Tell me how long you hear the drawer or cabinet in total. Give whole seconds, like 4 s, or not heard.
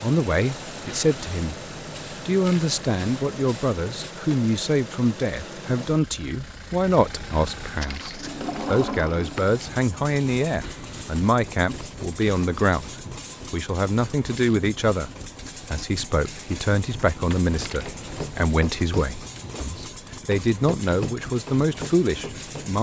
2 s.